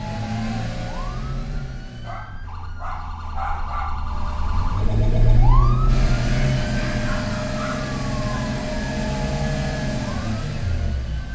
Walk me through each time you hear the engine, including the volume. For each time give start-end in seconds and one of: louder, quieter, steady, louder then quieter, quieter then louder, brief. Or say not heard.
0.0-2.2 brief
4.0-11.2 louder.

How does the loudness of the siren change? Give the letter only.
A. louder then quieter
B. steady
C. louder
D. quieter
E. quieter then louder
A.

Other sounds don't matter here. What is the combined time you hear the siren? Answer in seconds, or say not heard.
11 s.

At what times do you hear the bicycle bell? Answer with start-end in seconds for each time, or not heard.
not heard.